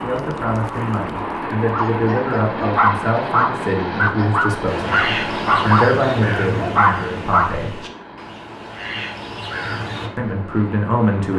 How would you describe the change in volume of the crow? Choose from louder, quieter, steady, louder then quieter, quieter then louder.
quieter then louder.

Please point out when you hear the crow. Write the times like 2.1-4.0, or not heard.
4.7-10.1.